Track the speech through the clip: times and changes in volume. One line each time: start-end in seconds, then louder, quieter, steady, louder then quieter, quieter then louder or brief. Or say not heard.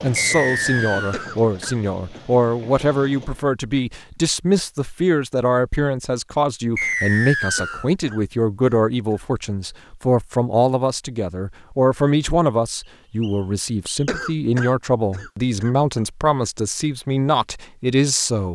0.0-18.5 steady.